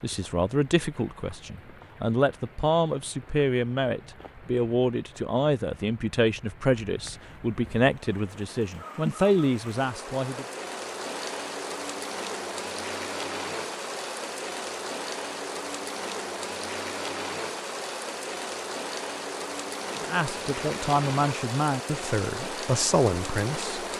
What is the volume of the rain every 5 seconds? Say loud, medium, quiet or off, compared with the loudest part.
quiet, medium, loud, loud, loud.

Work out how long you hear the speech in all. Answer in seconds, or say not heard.
14 s.